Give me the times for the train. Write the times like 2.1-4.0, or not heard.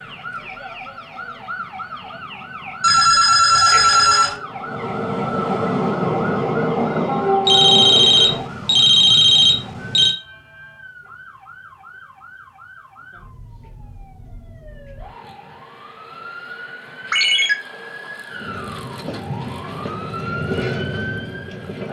0.1-8.5, 18.3-21.8.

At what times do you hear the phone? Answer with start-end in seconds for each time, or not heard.
2.8-4.3, 7.5-10.2, 17.1-17.6.